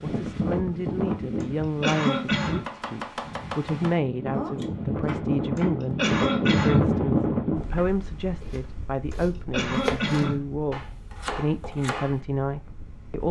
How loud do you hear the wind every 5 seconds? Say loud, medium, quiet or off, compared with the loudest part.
medium, loud, quiet.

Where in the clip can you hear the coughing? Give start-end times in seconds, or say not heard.
1.4-2.7, 5.5-7.0, 9.1-10.5.